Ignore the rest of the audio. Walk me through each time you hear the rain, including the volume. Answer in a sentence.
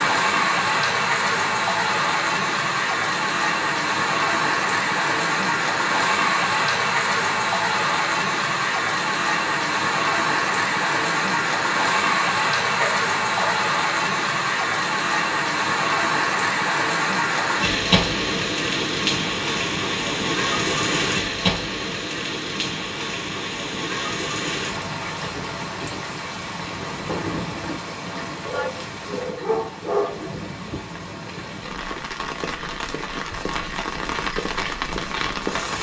The rain can be heard from 0.0 to 35.7 s, getting quieter.